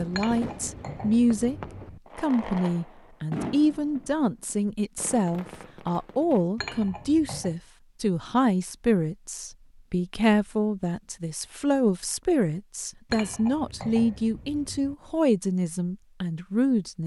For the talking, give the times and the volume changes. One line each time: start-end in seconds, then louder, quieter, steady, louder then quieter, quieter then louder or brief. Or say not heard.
0.0-1.6 brief
2.1-17.0 steady.